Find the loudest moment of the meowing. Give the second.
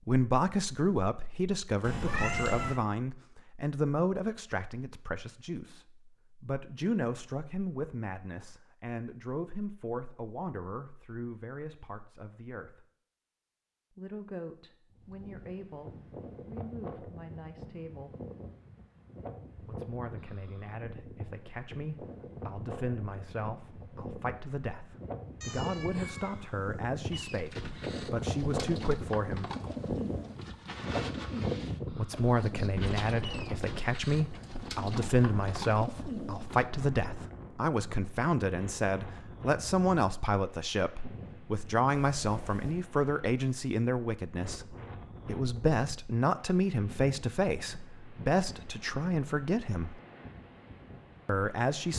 2 s.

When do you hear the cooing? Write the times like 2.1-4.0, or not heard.
27.1-36.7.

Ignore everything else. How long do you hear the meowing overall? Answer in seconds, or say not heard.
3 s.